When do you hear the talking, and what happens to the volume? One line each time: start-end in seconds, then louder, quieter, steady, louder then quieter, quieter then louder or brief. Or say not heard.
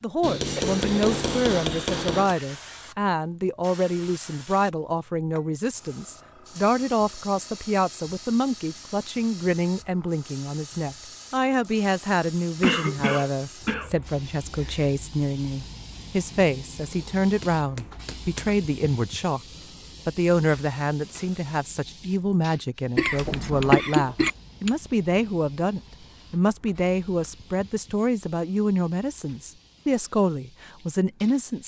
0.0-19.4 steady
20.1-31.6 steady.